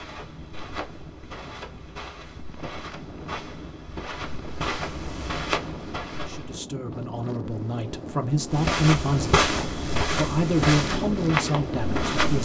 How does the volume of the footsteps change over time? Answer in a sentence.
The loudness of the footsteps goes up.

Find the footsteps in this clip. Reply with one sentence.
The footsteps can be heard from 0.0 to 6.6 s and from 8.5 to 12.4 s.